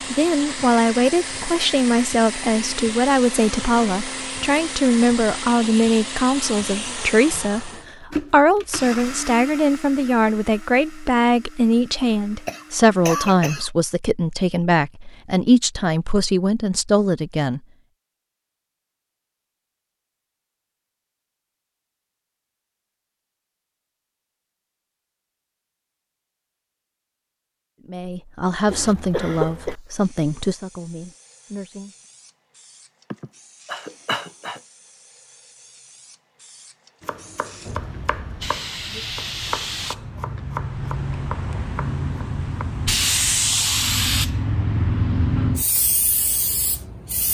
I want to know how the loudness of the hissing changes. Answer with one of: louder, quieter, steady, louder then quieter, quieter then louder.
louder.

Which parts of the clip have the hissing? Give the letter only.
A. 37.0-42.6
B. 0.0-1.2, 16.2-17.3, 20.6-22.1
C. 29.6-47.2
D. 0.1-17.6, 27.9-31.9
C.